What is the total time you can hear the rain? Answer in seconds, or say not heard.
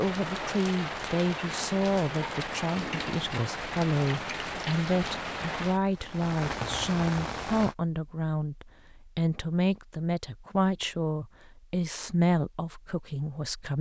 8 s.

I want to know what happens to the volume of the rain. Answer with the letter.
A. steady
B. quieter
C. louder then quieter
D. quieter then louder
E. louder
A.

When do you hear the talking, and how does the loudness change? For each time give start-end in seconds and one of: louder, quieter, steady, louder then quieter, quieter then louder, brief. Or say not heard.
0.0-13.7 steady.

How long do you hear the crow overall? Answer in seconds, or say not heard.
not heard.